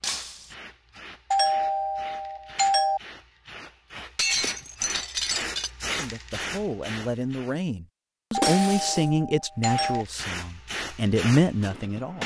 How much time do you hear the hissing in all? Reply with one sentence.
The hissing can be heard for 10 seconds in total.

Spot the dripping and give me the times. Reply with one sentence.
You can't hear the dripping here.